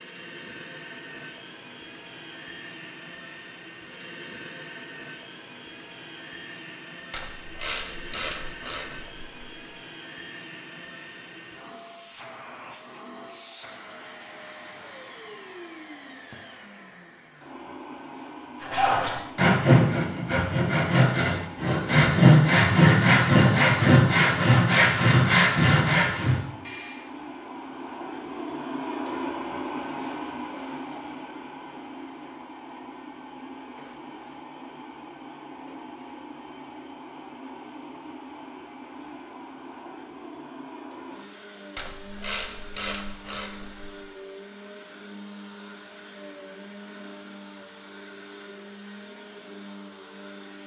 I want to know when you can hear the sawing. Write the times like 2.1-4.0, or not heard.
18.6-27.1.